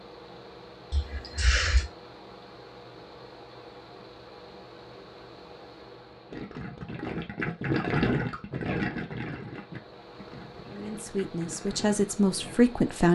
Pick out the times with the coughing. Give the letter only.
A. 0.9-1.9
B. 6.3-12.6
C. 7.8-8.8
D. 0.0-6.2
A.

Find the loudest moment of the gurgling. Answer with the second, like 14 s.
8 s.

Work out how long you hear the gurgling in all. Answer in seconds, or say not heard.
6 s.